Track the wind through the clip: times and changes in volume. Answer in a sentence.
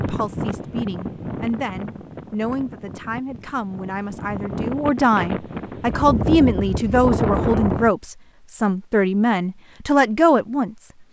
The wind can be heard from 0.0 to 7.9 s, getting quieter then louder.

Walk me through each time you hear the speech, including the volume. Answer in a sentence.
You can hear the speech from 0.0 to 10.9 s, getting louder.